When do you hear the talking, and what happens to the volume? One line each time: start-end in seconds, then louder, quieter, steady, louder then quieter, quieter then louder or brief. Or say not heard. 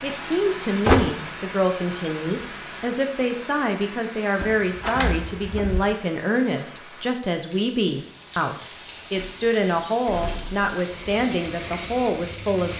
0.0-12.7 steady.